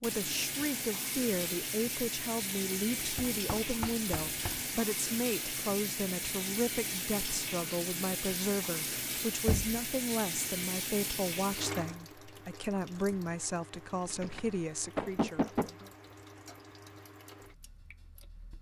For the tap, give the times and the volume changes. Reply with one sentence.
The tap can be heard from 0.0 to 18.5 s, getting quieter.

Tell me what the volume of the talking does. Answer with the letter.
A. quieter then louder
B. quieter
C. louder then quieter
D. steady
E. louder
D.